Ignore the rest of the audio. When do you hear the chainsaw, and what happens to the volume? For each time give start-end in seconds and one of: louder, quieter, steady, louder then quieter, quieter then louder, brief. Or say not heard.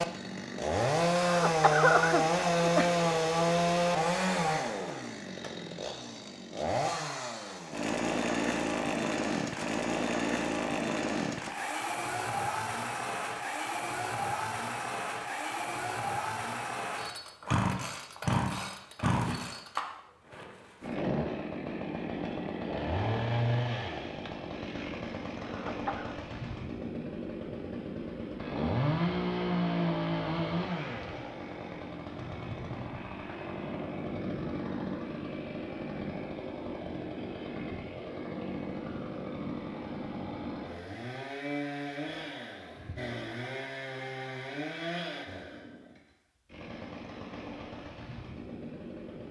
0.0-49.2 quieter.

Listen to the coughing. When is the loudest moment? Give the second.
2 s.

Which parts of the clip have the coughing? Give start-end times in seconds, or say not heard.
1.2-2.9, 25.4-26.1.